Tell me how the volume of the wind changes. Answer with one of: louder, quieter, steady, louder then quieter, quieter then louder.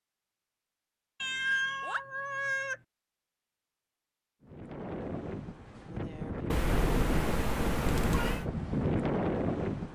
louder.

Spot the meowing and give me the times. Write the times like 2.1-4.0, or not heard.
1.2-2.8, 6.5-8.4.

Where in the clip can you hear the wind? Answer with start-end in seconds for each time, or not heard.
4.4-9.9.